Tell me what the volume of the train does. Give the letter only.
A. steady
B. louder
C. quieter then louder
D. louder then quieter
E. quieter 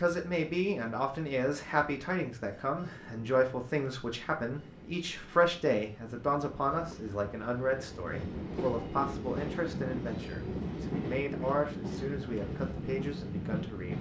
B.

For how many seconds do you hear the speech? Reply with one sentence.
You can hear the speech for 14 seconds altogether.